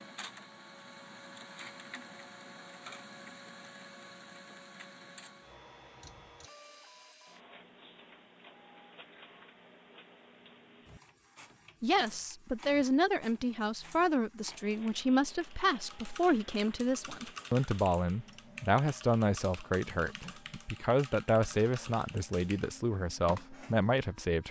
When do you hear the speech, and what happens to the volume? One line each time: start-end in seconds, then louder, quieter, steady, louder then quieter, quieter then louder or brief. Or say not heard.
11.8-24.4 steady.